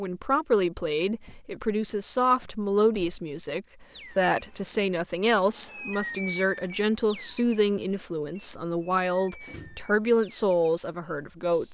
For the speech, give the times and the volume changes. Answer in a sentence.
The speech can be heard from 0.0 to 11.6 s, at a steady volume.